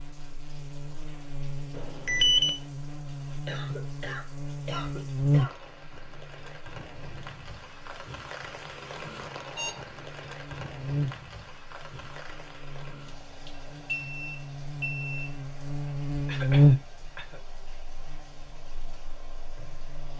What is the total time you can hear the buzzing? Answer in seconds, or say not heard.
20 s.